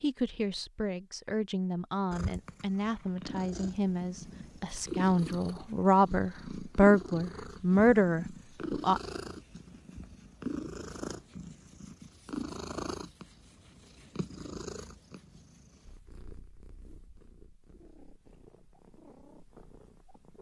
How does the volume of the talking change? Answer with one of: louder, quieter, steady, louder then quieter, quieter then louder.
louder.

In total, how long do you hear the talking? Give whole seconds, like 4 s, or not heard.
9 s.